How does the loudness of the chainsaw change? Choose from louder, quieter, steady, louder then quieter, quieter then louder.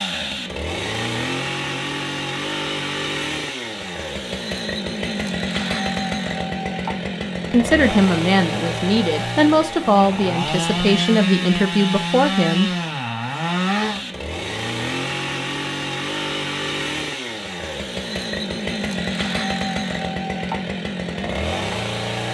steady.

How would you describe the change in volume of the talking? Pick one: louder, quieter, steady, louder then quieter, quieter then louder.
steady.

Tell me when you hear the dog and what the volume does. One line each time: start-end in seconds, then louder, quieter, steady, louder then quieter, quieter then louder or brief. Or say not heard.
not heard.